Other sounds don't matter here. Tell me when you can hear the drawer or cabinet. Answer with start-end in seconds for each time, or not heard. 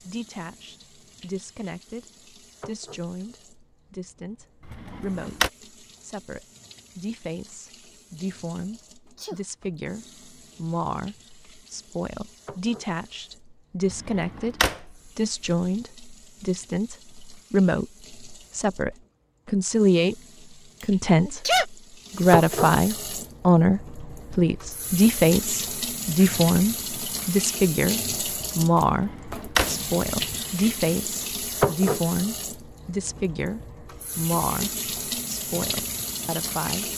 4.7-5.5, 13.8-15.1, 28.8-29.8.